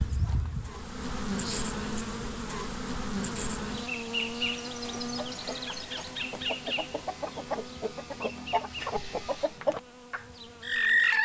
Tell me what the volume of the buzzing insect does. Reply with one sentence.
The volume of the buzzing insect goes down.